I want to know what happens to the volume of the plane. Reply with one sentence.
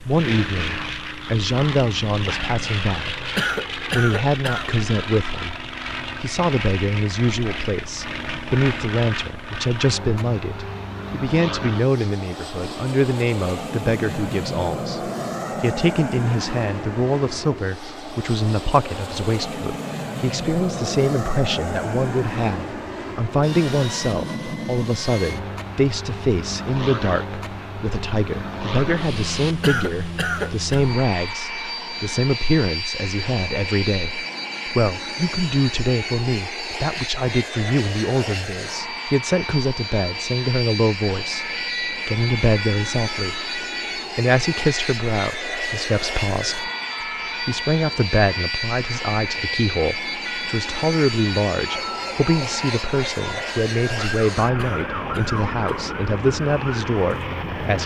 The volume of the plane stays about the same.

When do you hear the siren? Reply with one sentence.
The siren can be heard from 41.3 to 57.8 s.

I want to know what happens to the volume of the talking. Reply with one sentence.
The volume of the talking stays about the same.